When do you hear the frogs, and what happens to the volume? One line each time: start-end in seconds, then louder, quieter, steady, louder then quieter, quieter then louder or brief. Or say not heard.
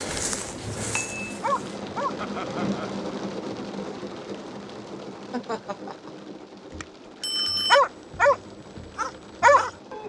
not heard.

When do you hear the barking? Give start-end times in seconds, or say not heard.
0.0-2.1, 7.7-10.0.